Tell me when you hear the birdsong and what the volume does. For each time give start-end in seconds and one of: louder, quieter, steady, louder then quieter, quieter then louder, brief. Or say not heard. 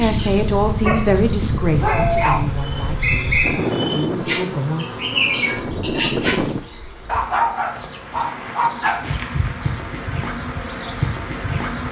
0.0-6.8 louder.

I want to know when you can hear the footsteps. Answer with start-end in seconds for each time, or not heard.
not heard.